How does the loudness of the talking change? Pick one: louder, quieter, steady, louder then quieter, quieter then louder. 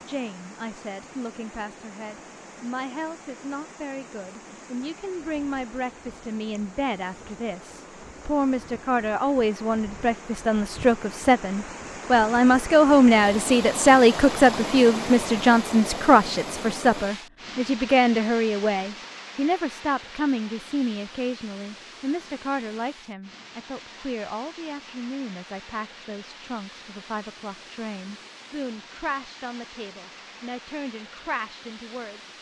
louder then quieter.